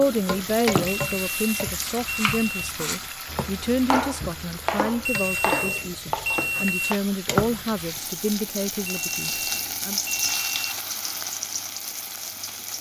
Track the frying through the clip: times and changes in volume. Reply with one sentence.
The frying can be heard from 0.0 to 12.7 s, getting quieter then louder.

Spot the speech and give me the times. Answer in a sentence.
The speech can be heard from 0.0 to 10.0 s.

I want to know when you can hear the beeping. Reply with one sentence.
The beeping can be heard from 0.8 to 2.7 s, from 5.0 to 7.0 s and from 8.8 to 10.8 s.